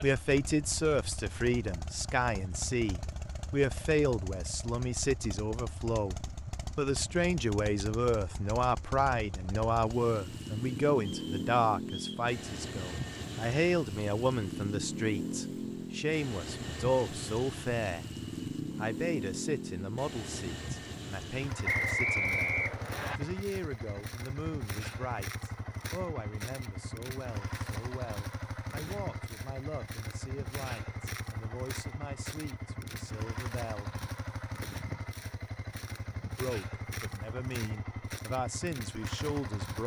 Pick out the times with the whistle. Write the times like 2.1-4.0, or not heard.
11.1-12.2, 21.6-23.2.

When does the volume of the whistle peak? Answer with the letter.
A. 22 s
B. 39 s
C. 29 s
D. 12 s
A.